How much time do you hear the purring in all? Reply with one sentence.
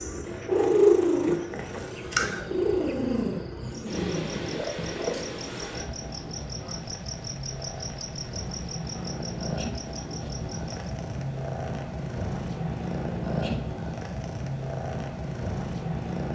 The purring can be heard for 16 seconds in total.